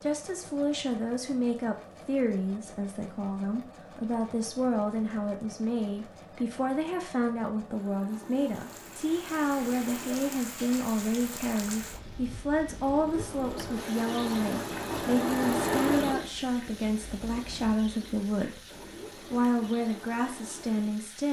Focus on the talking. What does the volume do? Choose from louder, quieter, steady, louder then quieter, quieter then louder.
steady.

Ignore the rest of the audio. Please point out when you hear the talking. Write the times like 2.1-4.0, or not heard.
0.0-21.2.